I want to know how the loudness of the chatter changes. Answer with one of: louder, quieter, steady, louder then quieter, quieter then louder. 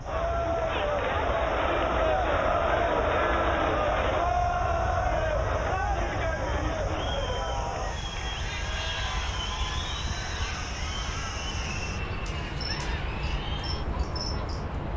quieter.